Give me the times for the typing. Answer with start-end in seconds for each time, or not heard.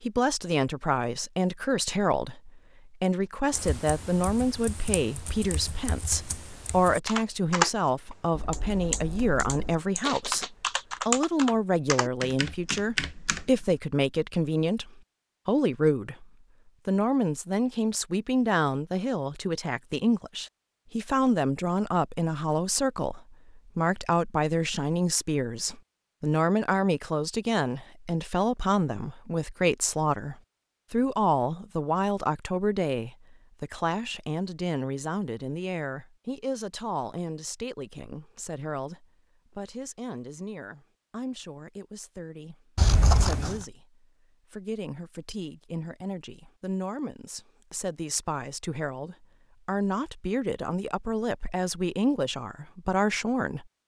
3.5-13.8.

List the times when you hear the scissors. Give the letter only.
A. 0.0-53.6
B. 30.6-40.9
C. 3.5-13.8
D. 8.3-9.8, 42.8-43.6
D.